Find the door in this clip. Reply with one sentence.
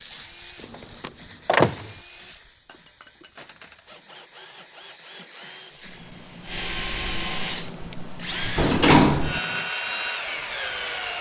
The door can be heard from 1.0 to 1.9 s and from 8.6 to 9.4 s.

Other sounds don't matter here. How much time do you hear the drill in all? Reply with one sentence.
You can hear the drill for 11 seconds altogether.